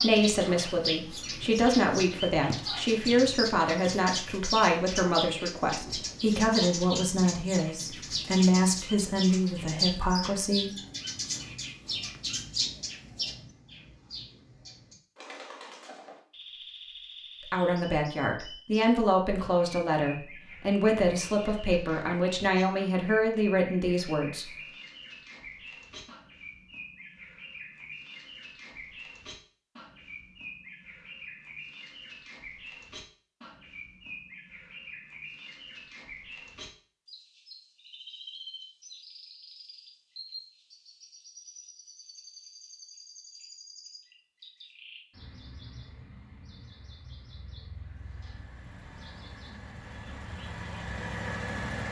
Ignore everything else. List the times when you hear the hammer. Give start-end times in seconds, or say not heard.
not heard.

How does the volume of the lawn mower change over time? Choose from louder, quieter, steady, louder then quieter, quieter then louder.
louder.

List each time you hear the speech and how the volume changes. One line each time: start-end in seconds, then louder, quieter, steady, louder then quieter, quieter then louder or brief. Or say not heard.
0.0-10.7 steady
17.5-24.5 steady.